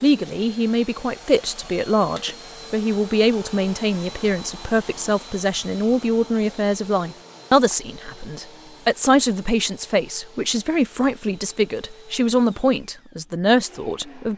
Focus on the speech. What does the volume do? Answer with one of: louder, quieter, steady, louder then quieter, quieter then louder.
steady.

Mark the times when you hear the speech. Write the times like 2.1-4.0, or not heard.
0.0-14.3.